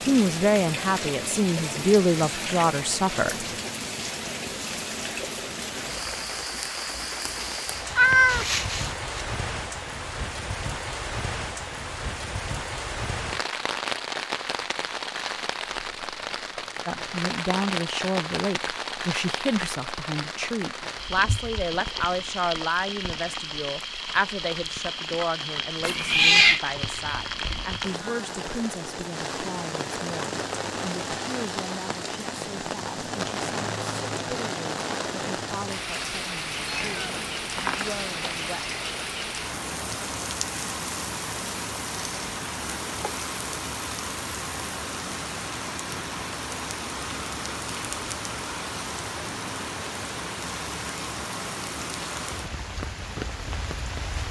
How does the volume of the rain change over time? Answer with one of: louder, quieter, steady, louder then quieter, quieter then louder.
steady.